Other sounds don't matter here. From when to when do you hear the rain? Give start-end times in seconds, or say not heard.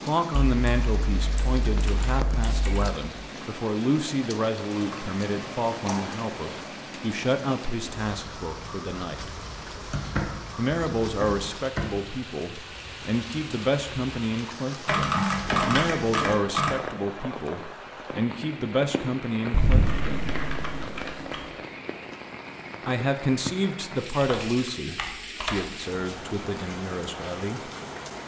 0.0-28.2.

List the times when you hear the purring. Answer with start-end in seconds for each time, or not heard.
not heard.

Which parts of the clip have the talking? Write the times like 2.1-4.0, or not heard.
0.0-9.3, 10.6-20.4, 22.9-27.7.